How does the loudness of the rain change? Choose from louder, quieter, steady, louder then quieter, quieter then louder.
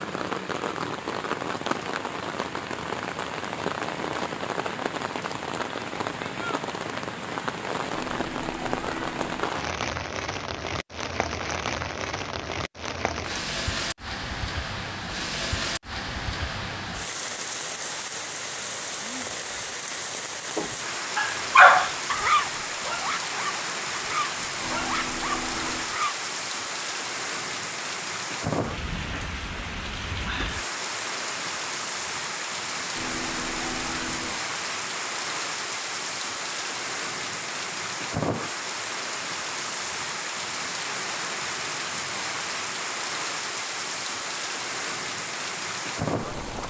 steady.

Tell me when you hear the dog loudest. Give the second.
22 s.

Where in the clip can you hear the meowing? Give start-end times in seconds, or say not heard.
7.9-9.3, 24.6-25.9, 33.0-34.4.